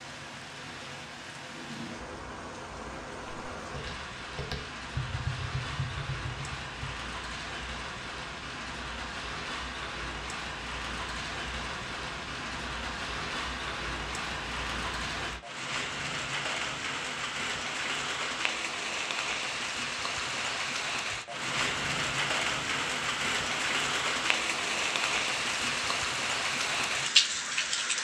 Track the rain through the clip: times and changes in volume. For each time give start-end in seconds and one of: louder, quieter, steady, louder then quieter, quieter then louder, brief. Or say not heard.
0.0-27.9 louder.